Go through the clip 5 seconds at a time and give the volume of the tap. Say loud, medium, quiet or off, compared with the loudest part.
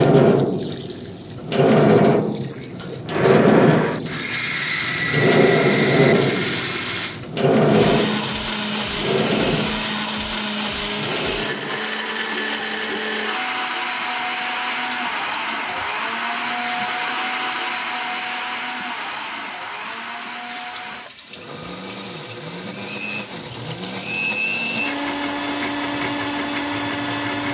loud, loud, quiet, quiet, quiet, quiet.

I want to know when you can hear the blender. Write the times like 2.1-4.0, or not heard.
3.0-27.4.